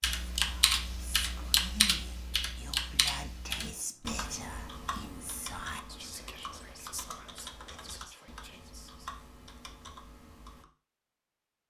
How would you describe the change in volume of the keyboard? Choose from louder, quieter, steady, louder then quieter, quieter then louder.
quieter.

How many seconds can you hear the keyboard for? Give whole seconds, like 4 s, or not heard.
11 s.